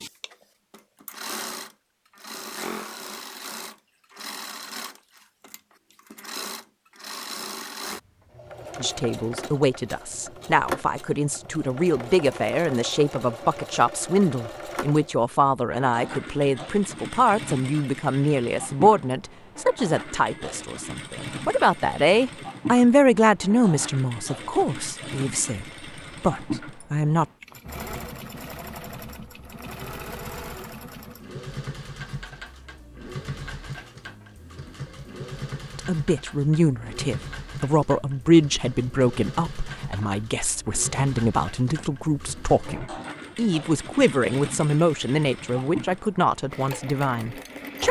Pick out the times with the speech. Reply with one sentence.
The speech can be heard from 8.8 to 27.2 s and from 35.8 to 47.8 s.